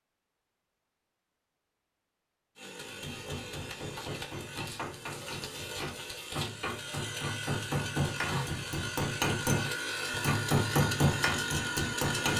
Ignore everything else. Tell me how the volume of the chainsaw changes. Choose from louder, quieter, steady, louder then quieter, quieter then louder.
louder.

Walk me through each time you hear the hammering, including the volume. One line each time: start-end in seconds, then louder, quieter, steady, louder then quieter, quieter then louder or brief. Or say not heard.
2.9-12.3 louder.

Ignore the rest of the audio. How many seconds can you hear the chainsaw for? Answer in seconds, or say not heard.
10 s.